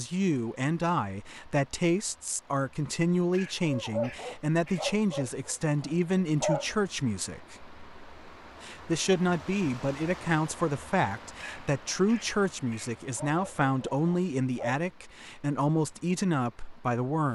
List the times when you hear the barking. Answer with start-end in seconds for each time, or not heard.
3.6-6.8, 13.2-14.8.